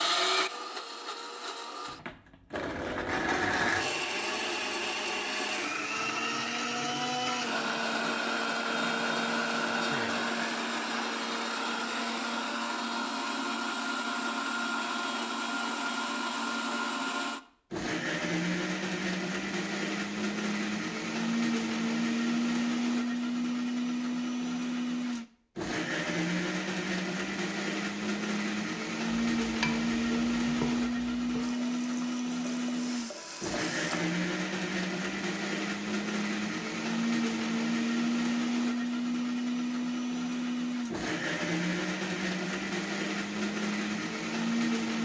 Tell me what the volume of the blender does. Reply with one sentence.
The loudness of the blender stays about the same.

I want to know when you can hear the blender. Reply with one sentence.
You can hear the blender from 0.0 to 45.0 s.